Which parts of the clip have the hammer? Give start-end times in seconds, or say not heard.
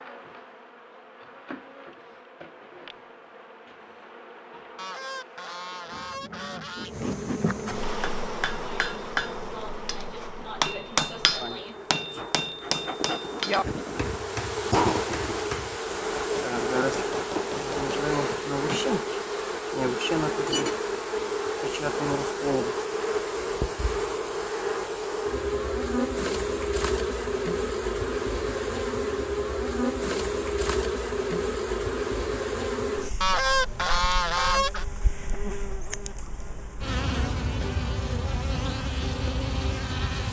7.8-18.9.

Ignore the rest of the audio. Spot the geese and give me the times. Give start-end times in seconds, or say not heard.
4.8-7.0, 33.2-34.9.